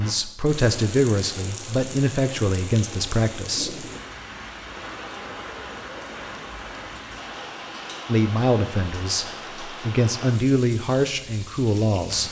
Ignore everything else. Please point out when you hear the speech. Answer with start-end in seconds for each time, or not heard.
0.0-3.9, 8.1-12.2.